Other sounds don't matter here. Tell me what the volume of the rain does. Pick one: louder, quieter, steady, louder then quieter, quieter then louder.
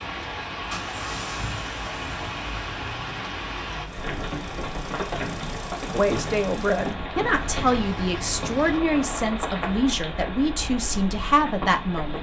steady.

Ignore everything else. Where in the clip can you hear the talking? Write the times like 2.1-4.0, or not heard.
5.9-12.1.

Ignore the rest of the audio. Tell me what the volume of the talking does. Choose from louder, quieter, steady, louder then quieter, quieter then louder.
steady.